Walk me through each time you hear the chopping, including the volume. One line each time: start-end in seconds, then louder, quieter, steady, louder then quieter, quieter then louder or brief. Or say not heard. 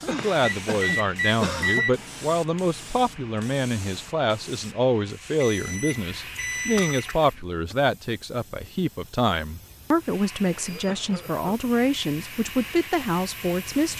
not heard.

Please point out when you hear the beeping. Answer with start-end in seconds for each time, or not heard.
0.5-1.9, 5.4-7.2, 10.4-11.3.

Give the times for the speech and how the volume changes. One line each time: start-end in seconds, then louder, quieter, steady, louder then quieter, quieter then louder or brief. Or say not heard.
0.0-13.9 steady.